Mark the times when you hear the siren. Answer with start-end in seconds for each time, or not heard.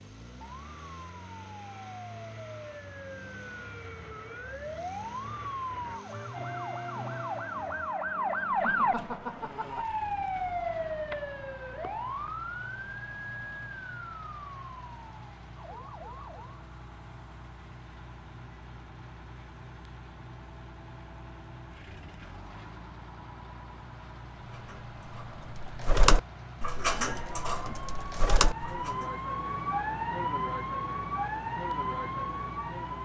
0.2-16.6, 27.1-33.0.